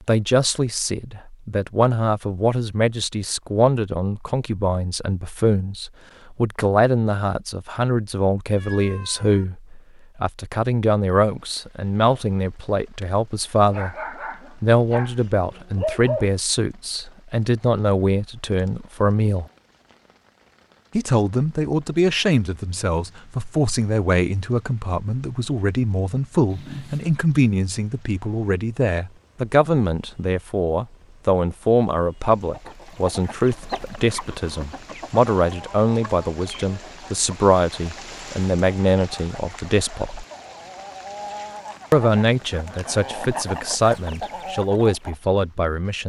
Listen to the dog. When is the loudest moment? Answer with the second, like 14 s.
16 s.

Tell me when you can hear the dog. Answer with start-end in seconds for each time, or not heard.
13.7-16.3.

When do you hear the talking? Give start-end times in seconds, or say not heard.
0.1-13.9, 14.6-19.4, 20.9-40.2, 41.9-46.0.